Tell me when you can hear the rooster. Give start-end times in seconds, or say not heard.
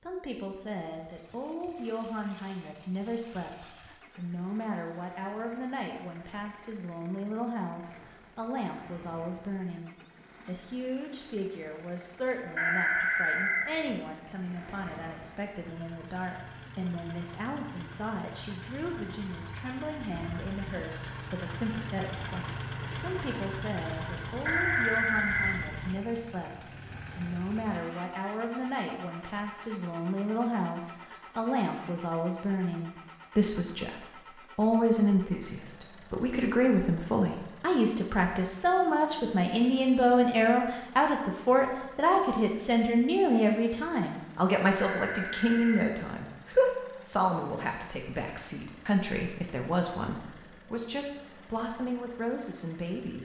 12.6-13.8, 24.4-25.6, 44.8-46.0.